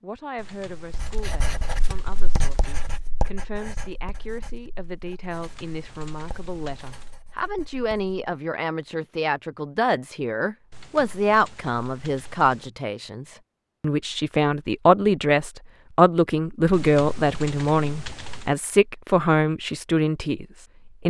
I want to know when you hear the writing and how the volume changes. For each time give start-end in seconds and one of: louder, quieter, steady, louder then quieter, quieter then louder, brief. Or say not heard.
0.9-8.2 quieter.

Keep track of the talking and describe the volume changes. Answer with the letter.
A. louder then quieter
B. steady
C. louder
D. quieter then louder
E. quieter
C.